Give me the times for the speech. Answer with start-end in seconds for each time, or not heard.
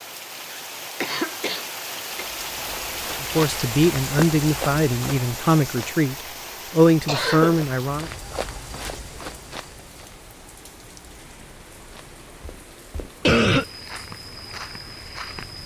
3.2-8.1.